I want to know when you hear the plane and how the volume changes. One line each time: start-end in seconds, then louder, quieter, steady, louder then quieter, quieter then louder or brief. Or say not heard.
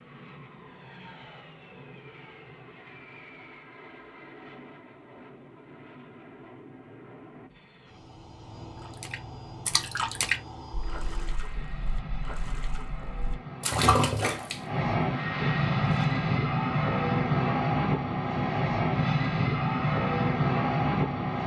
0.0-21.4 louder.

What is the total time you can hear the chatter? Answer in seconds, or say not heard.
not heard.